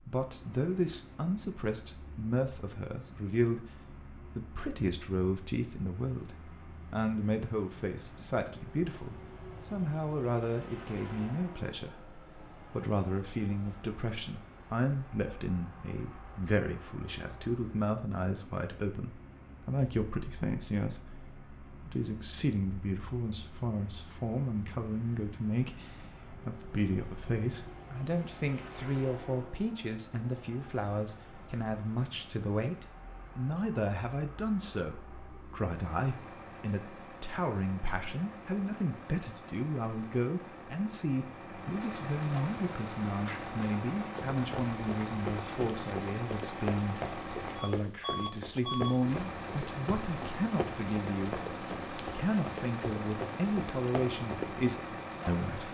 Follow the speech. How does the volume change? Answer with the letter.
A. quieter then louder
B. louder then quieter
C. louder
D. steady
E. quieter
D.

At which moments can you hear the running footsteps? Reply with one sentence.
You can hear the running footsteps from 44.1 to 54.7 s.